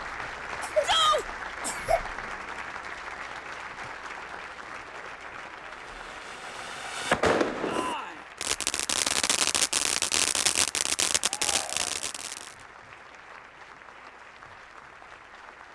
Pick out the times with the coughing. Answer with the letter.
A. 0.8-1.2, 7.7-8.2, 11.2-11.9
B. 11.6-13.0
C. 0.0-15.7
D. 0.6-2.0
D.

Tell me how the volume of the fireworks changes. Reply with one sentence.
The loudness of the fireworks stays about the same.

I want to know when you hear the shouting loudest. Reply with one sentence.
The volume of the shouting peaks at 1 second.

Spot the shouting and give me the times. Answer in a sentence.
The shouting can be heard from 0.8 to 1.2 s, from 7.7 to 8.2 s and from 11.2 to 11.9 s.